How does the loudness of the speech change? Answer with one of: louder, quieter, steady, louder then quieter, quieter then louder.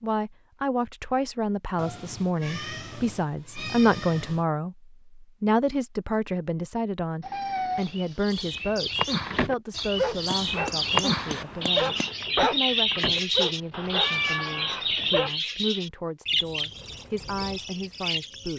quieter.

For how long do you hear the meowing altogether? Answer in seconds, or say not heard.
5 s.